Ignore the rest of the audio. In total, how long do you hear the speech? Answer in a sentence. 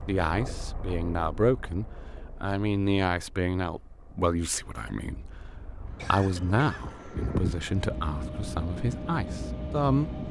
The speech can be heard for 10 seconds in total.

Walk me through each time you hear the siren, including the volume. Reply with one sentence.
You can't hear the siren here.